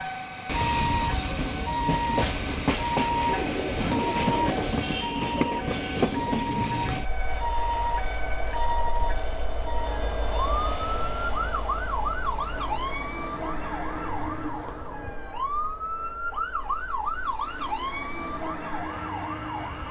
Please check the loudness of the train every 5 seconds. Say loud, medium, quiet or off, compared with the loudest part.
loud, loud, medium, quiet.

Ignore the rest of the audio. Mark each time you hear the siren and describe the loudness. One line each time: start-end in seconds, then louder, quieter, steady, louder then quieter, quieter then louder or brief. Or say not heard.
0.0-19.8 steady.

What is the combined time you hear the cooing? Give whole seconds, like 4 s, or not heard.
3 s.